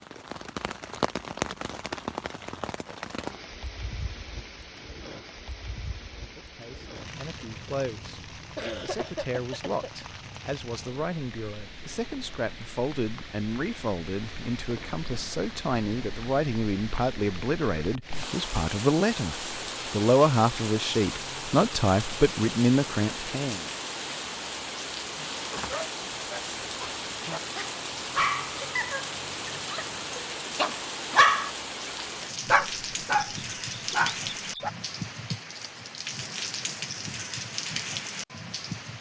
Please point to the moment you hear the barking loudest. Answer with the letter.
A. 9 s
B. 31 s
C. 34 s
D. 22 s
B.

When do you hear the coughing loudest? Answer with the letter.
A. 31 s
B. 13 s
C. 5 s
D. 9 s
D.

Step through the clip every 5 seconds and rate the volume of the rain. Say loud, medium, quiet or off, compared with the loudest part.
loud, medium, medium, loud, loud, loud, loud, loud.